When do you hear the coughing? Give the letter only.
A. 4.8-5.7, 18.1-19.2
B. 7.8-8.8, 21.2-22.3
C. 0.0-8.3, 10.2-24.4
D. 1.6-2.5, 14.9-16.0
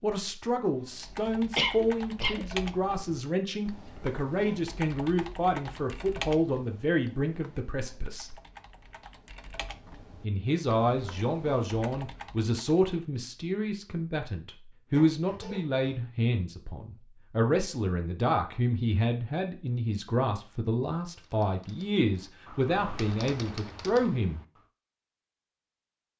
D.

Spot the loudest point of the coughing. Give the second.
2 s.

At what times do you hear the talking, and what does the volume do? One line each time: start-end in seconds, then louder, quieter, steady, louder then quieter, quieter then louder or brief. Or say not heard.
0.0-8.3 steady
10.2-24.4 steady.